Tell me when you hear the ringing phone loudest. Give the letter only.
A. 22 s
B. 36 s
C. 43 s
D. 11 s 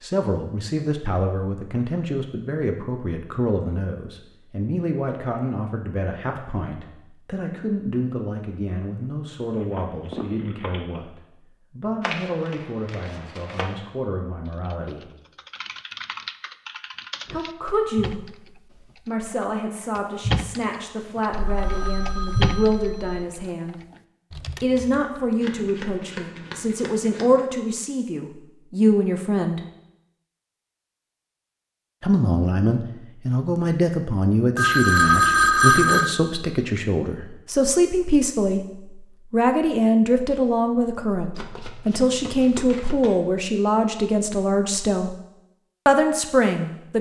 B.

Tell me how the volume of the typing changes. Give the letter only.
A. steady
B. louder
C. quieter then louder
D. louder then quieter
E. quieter
D.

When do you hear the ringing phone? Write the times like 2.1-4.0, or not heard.
9.5-11.0, 21.3-23.2, 34.5-36.1.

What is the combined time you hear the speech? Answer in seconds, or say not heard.
41 s.